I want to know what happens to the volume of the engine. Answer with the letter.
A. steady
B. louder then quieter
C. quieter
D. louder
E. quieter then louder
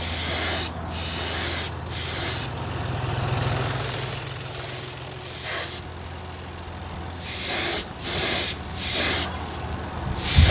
B.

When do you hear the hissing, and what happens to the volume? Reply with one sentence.
You can hear the hissing from 0.0 to 10.4 s, getting quieter then louder.